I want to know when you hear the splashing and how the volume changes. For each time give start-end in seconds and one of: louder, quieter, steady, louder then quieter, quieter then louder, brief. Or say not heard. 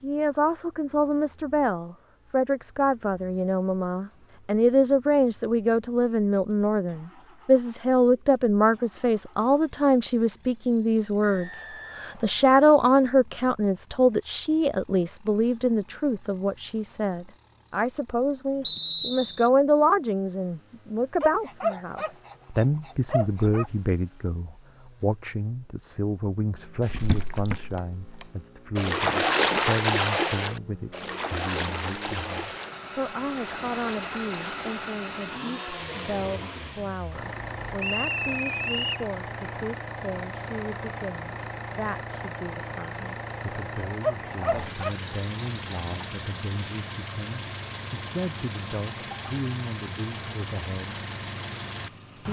26.8-34.9 louder then quieter.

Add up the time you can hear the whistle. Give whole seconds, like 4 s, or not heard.
3 s.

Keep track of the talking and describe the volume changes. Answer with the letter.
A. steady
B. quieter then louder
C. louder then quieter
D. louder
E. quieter
E.